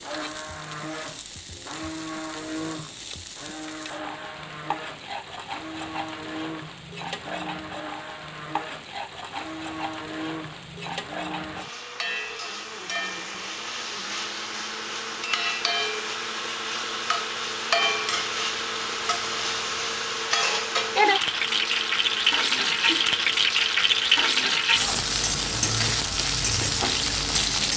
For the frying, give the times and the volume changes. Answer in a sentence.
The frying can be heard from 0.0 to 27.7 s, getting louder.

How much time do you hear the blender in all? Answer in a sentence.
You can hear the blender for 28 seconds altogether.